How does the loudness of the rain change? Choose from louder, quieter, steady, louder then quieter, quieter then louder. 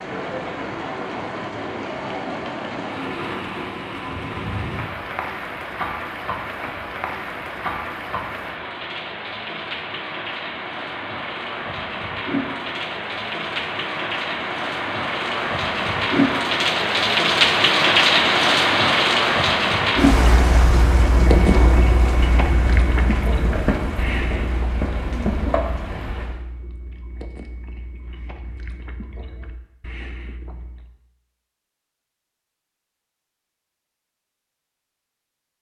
louder then quieter.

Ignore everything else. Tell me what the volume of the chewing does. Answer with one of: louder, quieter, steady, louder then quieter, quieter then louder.
quieter.